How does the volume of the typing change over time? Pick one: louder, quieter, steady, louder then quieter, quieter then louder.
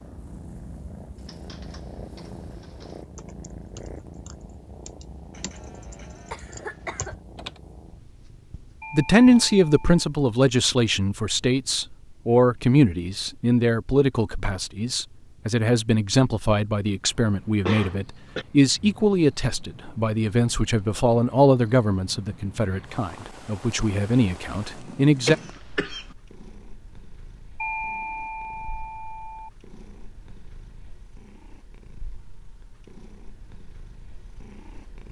louder.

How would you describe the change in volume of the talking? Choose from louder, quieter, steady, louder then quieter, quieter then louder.
quieter.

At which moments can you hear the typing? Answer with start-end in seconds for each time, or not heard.
1.1-7.6.